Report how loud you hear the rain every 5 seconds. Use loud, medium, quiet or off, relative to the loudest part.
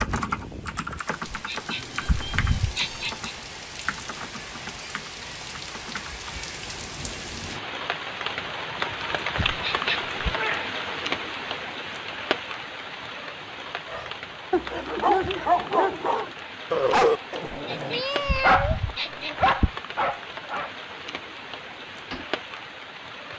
medium, loud, loud, medium, medium.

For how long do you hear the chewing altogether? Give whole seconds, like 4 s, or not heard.
not heard.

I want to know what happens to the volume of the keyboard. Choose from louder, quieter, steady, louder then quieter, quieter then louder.
quieter.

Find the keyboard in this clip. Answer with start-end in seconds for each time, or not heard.
0.0-6.3.